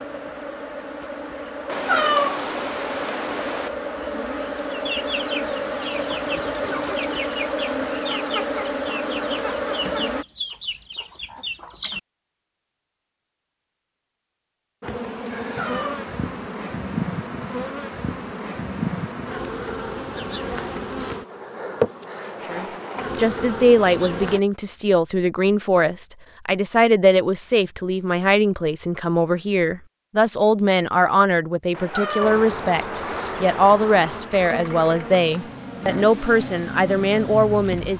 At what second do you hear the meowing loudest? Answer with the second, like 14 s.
2 s.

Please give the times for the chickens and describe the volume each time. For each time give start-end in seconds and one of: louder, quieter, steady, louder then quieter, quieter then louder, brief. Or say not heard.
4.5-12.0 steady.